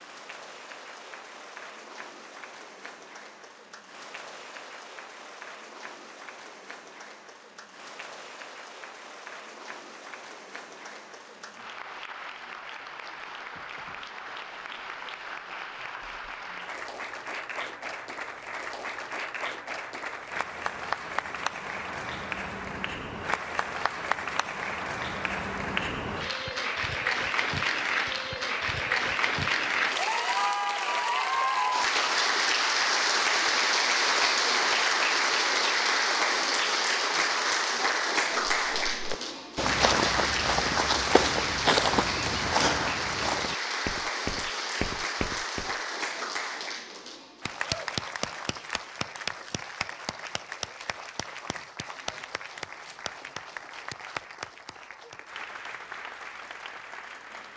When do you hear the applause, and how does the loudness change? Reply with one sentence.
The applause can be heard from 0.0 to 57.5 s, getting louder then quieter.